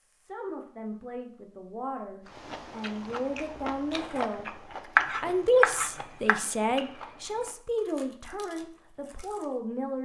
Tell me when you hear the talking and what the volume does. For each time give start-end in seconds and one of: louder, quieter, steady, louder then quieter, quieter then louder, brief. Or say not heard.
0.0-10.0 louder then quieter.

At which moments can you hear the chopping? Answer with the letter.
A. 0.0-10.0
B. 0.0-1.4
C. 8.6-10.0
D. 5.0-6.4
D.